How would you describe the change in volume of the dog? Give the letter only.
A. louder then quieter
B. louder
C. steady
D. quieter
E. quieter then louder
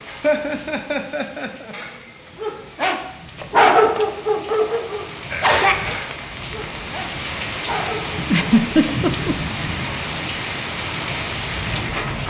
A.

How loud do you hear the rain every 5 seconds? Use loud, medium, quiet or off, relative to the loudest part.
quiet, loud, loud.